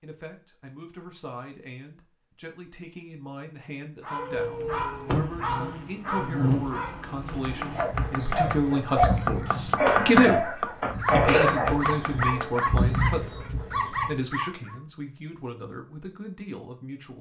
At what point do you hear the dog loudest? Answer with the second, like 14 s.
9 s.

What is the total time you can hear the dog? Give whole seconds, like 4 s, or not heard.
11 s.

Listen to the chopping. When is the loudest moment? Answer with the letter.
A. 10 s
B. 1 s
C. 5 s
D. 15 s
A.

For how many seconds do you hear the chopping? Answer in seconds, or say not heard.
6 s.